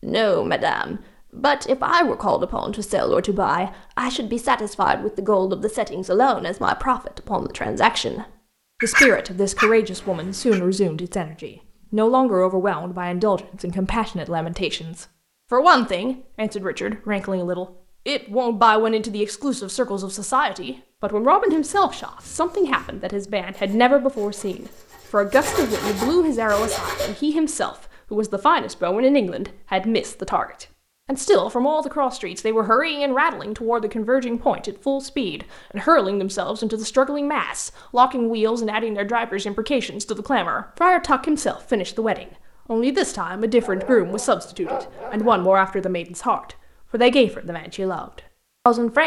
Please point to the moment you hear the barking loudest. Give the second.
9 s.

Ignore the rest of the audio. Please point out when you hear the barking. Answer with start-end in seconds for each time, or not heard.
8.8-10.6, 43.6-45.5.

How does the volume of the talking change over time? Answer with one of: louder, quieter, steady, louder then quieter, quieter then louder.
steady.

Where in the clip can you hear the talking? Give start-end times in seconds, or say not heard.
0.0-49.0.